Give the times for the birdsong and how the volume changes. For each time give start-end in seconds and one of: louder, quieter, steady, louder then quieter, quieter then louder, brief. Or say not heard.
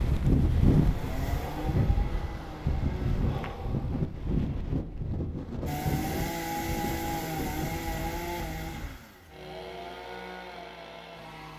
not heard.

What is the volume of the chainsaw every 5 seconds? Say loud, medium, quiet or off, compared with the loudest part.
medium, loud, medium.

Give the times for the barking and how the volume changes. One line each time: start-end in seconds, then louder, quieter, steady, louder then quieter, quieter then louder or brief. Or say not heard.
not heard.